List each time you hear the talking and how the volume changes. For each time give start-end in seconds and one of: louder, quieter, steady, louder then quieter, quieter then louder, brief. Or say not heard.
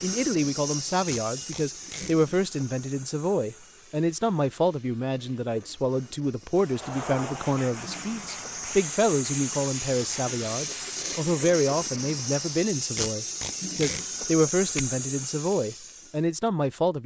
0.0-17.0 steady.